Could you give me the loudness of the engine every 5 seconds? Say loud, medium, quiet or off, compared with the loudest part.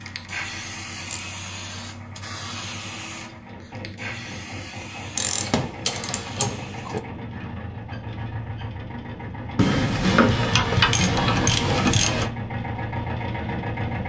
medium, medium, loud.